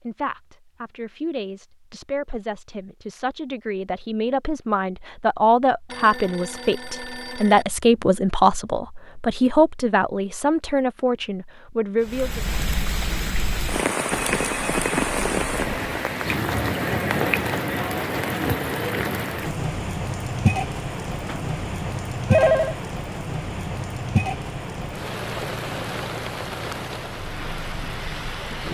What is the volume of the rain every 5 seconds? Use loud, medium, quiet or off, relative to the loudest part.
off, off, loud, loud, loud, medium.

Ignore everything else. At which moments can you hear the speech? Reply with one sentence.
You can hear the speech from 0.1 to 12.4 s.